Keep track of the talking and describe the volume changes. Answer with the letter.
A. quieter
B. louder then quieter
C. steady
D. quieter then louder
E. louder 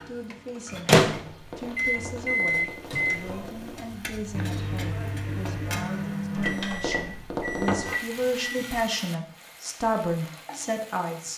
E.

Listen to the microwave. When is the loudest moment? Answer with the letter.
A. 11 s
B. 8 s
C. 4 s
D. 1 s
D.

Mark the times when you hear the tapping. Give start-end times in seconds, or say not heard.
1.1-3.9, 6.3-8.0.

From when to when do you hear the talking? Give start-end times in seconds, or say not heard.
0.1-11.3.